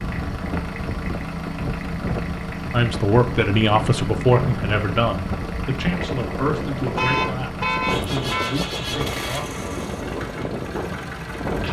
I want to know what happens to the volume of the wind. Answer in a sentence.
The volume of the wind stays about the same.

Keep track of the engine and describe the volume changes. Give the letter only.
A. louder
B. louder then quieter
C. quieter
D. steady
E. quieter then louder
D.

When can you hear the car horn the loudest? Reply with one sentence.
The loudest moment of the car horn is at 7 seconds.